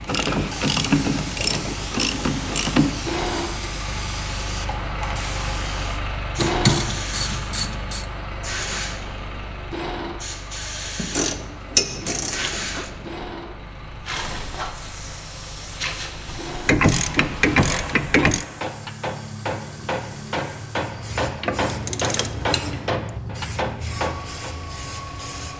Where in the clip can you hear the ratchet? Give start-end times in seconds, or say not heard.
0.1-3.0, 6.4-8.1, 10.9-12.9, 16.6-18.4, 21.4-22.9.